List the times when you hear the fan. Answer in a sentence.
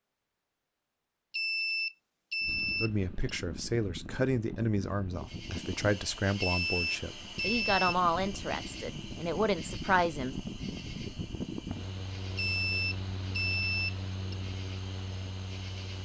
The fan can be heard from 2.4 to 15.9 s.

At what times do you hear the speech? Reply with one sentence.
The speech can be heard from 2.8 to 10.3 s.